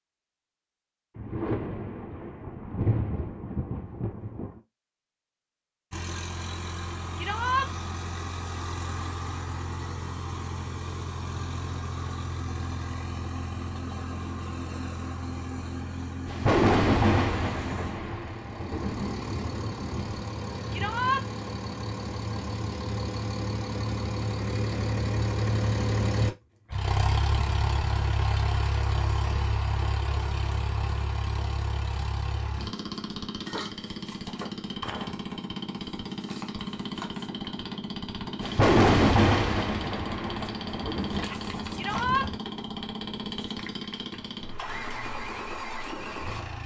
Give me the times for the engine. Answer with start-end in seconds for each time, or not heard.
5.9-46.6.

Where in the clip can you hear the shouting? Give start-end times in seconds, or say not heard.
7.2-7.7, 20.7-21.2, 41.8-42.3.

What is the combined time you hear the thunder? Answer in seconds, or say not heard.
11 s.